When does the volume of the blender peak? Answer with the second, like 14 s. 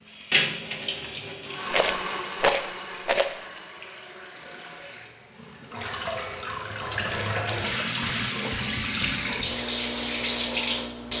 2 s.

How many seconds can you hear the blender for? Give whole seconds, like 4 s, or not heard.
4 s.